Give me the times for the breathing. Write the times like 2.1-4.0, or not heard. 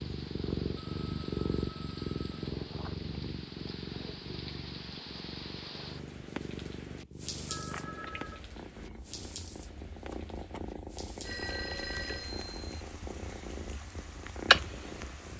not heard.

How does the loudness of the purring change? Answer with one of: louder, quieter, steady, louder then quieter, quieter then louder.
quieter then louder.